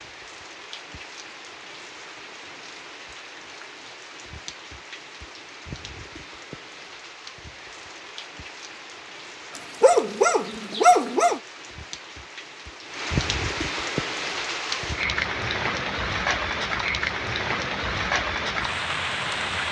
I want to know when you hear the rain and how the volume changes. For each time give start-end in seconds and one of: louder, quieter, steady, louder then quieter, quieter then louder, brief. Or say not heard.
0.0-19.6 louder.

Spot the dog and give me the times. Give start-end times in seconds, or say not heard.
9.6-11.4.